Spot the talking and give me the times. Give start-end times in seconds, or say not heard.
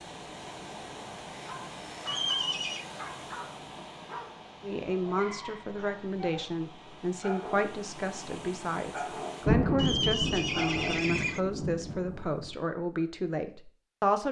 4.6-14.2.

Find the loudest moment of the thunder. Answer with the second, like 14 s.
10 s.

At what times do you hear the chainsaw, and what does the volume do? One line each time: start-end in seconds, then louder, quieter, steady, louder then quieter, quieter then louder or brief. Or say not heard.
not heard.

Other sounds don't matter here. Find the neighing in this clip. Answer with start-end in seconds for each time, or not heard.
2.0-2.9, 9.8-11.4.